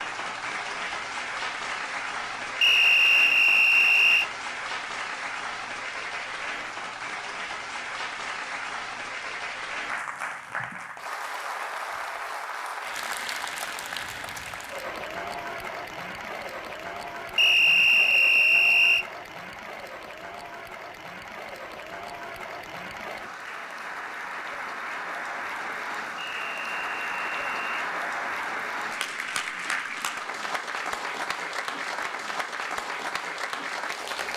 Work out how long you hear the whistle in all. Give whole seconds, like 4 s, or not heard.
5 s.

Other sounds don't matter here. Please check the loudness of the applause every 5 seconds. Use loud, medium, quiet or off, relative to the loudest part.
loud, loud, loud, medium, medium, loud, loud.